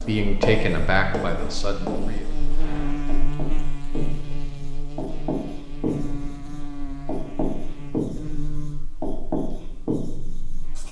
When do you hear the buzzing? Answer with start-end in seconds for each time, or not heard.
0.0-10.8.